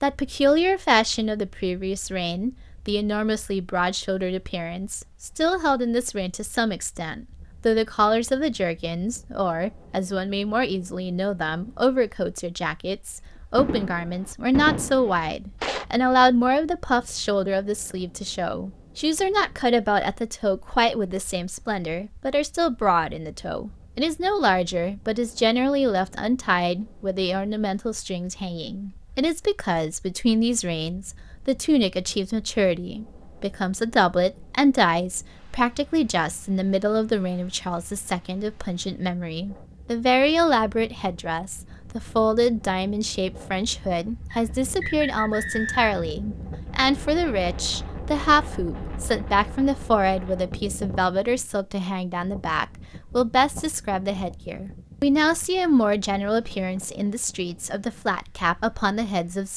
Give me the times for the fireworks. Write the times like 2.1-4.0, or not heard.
13.6-15.8.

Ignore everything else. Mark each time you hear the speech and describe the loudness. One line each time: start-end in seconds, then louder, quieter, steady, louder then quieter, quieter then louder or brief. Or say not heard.
0.0-59.5 steady.